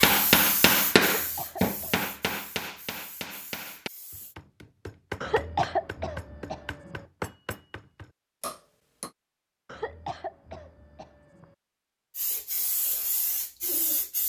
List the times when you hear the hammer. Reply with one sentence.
The hammer can be heard from 0.0 to 9.1 s.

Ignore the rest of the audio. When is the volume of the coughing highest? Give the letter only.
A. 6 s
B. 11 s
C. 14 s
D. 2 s
A.